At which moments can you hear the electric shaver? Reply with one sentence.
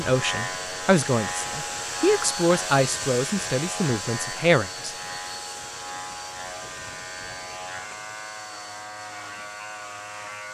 You can hear the electric shaver from 0.0 to 10.5 s.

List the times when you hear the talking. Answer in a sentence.
The talking can be heard from 0.0 to 5.0 s.